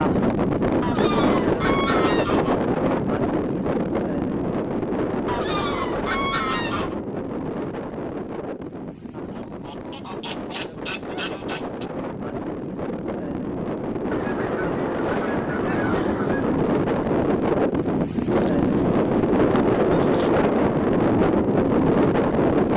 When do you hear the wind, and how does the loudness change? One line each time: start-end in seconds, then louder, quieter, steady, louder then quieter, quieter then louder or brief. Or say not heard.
0.0-22.7 quieter then louder.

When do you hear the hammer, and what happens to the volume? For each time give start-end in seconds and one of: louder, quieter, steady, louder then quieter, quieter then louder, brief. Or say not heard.
not heard.